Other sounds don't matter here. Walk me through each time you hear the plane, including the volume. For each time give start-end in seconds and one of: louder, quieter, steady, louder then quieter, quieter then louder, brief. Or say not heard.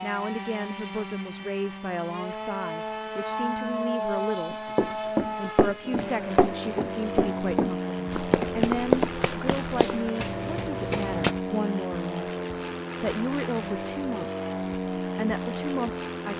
0.0-16.3 steady.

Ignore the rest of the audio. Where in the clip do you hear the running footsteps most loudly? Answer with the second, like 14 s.
9 s.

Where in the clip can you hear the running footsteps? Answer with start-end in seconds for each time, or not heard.
4.5-11.3.